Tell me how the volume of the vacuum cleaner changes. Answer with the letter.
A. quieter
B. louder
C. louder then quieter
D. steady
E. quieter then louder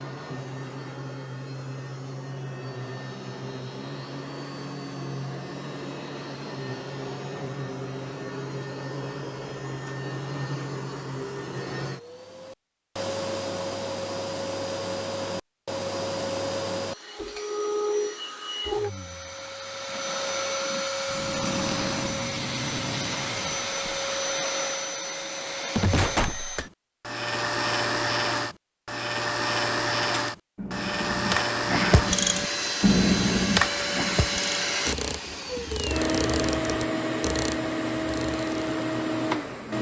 B.